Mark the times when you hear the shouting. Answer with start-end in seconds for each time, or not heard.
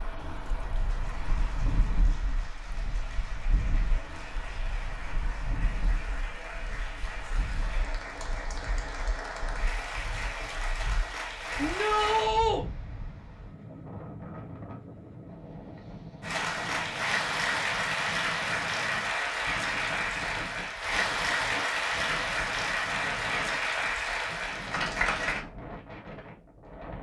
11.6-12.7.